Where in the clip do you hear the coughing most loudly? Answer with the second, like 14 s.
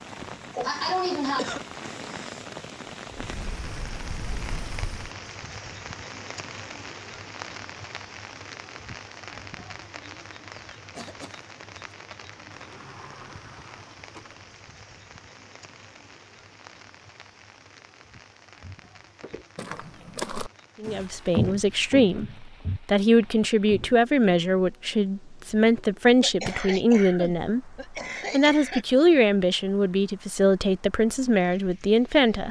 1 s.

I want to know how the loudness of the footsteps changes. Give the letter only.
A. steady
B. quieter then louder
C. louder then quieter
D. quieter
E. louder
C.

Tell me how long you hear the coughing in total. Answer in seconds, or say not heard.
4 s.